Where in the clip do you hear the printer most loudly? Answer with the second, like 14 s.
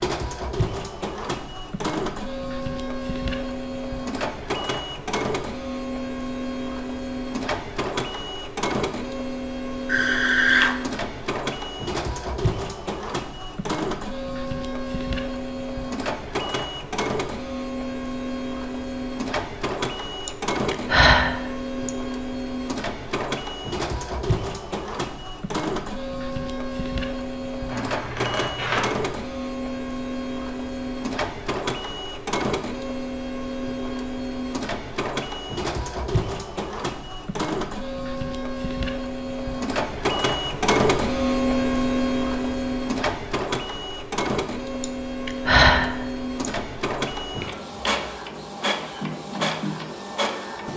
41 s.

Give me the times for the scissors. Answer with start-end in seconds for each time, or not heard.
27.6-29.1.